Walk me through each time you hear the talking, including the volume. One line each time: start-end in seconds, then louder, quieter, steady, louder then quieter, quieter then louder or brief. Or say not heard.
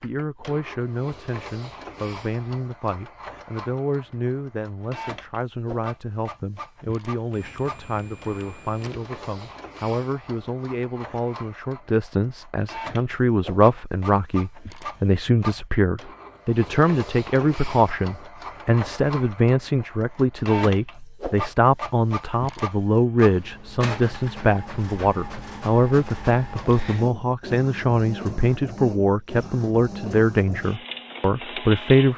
0.0-32.1 louder.